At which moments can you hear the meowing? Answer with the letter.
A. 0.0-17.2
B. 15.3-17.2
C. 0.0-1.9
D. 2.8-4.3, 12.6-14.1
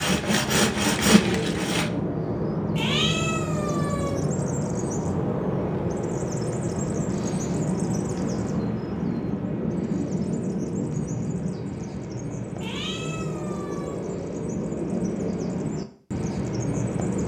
D.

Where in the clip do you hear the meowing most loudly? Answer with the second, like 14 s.
3 s.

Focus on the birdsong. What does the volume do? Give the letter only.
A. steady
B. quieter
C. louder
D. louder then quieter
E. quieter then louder
A.